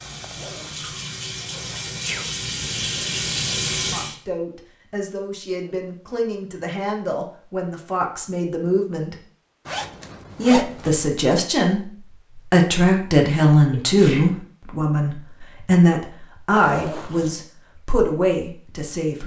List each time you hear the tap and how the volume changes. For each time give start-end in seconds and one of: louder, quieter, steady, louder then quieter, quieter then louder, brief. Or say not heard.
0.0-4.2 louder.